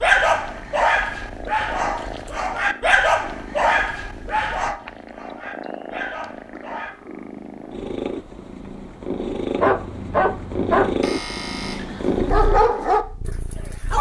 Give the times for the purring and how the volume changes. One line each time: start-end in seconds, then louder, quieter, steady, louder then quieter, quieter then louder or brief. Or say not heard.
0.0-13.9 louder.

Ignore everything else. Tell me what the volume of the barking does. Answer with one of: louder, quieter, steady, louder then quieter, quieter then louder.
quieter then louder.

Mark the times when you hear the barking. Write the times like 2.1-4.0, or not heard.
0.0-7.0, 9.6-13.9.